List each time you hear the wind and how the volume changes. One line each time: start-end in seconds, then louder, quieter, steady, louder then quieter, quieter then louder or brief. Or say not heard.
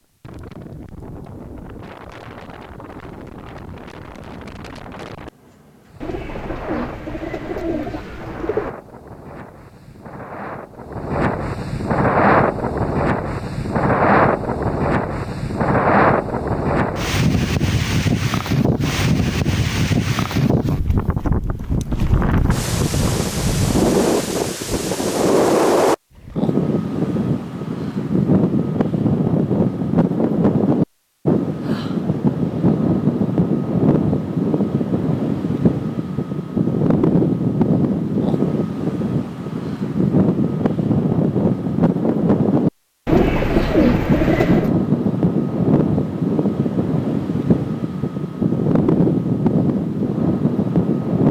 0.2-51.2 louder.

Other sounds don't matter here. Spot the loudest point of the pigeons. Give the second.
44 s.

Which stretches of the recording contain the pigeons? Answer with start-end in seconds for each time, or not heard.
6.0-8.7, 43.0-44.8.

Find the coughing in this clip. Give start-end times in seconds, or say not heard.
not heard.